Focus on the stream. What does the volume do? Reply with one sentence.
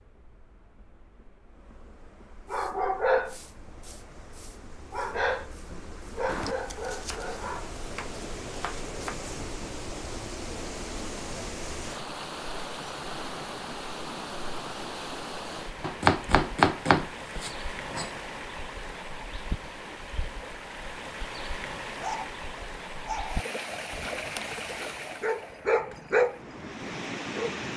The volume of the stream goes up.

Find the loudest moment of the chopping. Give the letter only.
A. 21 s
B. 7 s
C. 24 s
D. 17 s
D.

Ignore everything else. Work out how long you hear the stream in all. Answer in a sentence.
You can hear the stream for 28 seconds altogether.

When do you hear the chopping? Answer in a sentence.
You can hear the chopping from 6.2 to 9.2 s and from 15.8 to 18.1 s.